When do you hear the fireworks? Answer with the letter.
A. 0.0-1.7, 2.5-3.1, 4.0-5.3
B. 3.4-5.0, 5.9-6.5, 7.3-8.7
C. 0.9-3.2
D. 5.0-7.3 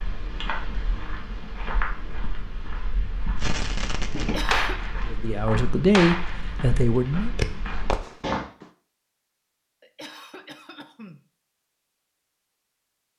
B.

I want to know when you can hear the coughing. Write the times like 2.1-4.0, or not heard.
4.2-4.8, 9.8-11.2.